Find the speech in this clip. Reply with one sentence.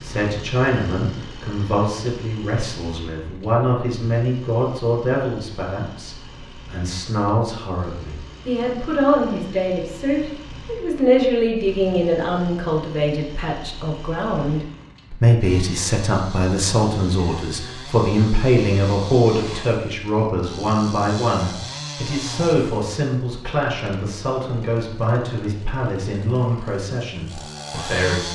You can hear the speech from 0.0 to 28.3 s.